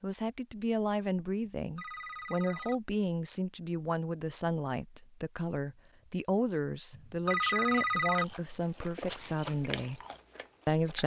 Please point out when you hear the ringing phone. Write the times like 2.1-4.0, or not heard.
1.6-2.8, 6.9-8.2.